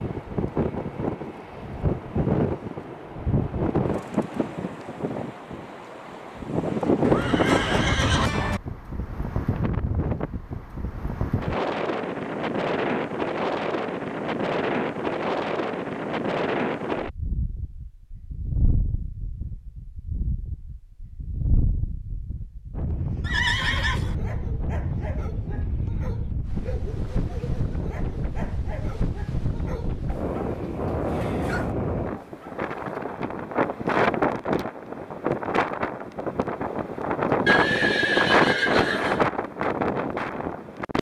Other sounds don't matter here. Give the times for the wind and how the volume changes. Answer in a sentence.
The wind can be heard from 0.0 to 40.9 s, getting quieter then louder.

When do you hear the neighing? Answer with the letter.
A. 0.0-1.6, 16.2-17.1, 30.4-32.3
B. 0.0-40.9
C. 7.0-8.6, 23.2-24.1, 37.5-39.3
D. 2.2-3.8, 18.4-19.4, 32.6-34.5
C.